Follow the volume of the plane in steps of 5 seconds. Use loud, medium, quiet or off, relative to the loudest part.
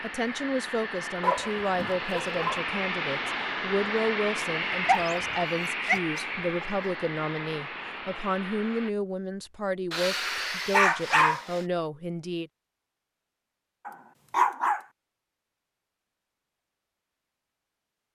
loud, loud, off, off.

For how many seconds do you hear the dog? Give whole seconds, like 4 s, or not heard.
6 s.